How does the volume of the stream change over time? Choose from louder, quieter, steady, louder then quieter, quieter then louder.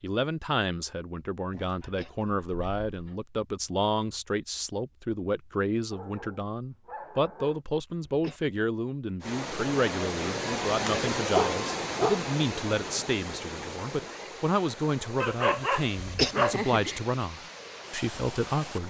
quieter.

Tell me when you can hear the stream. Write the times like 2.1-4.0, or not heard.
9.2-18.8.